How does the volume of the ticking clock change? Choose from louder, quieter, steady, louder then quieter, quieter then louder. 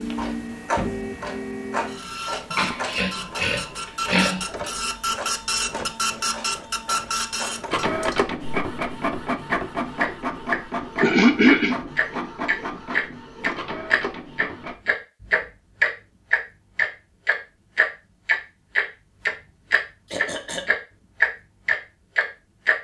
quieter then louder.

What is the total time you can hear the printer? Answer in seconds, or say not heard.
15 s.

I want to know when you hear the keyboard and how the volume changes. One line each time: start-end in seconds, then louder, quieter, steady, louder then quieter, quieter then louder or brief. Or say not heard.
not heard.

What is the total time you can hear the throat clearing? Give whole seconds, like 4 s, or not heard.
3 s.